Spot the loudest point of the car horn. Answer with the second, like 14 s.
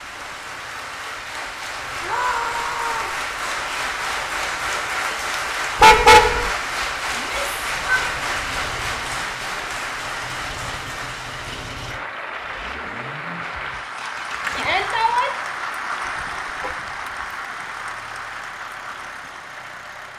6 s.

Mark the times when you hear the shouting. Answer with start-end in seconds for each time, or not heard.
2.0-3.2, 7.2-8.3, 14.6-15.3.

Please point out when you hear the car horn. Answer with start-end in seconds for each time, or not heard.
5.8-6.5, 16.1-17.2.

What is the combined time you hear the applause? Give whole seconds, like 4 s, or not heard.
20 s.